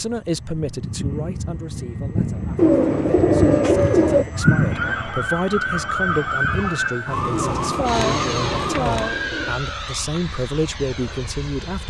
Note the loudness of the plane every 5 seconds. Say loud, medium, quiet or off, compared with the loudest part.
loud, medium, medium.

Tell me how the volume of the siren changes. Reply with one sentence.
The loudness of the siren stays about the same.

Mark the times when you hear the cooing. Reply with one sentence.
You can hear the cooing from 2.5 to 4.2 s and from 7.3 to 9.6 s.